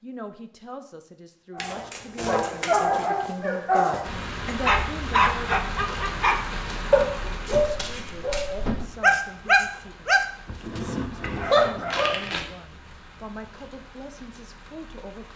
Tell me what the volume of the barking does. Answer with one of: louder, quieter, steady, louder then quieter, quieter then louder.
steady.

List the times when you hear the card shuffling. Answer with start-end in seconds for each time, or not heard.
1.6-3.0, 7.5-8.4, 11.2-12.4.